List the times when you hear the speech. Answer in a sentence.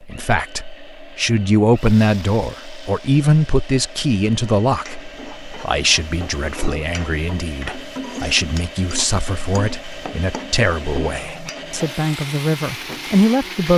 You can hear the speech from 0.0 to 13.7 s.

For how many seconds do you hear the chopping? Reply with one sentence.
You can't hear the chopping here.